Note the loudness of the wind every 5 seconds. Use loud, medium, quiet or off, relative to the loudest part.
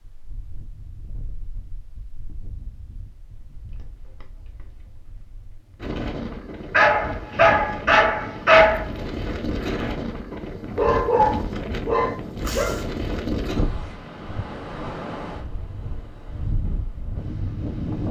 quiet, loud, loud, loud.